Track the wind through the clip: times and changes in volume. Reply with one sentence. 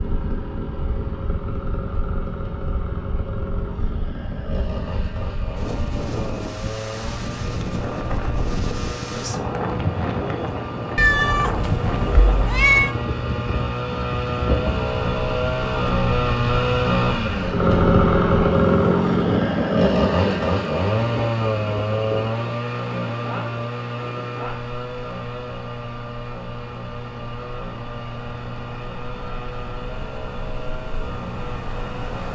You can hear the wind from 0.0 to 32.3 s, getting louder then quieter.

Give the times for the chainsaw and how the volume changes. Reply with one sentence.
The chainsaw can be heard from 0.0 to 32.3 s, getting louder then quieter.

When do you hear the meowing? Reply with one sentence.
You can hear the meowing from 10.9 to 12.9 s.